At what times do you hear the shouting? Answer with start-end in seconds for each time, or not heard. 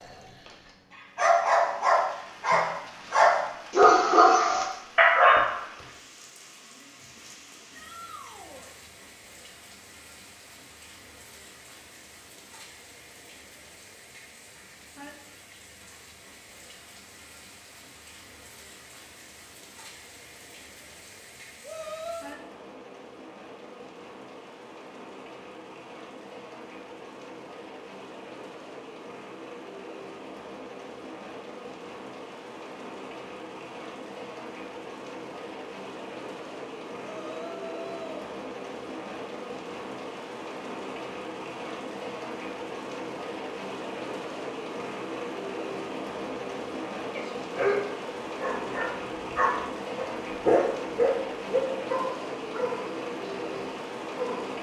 7.7-8.7, 21.6-22.3, 37.0-38.2.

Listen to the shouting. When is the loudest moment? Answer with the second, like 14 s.
22 s.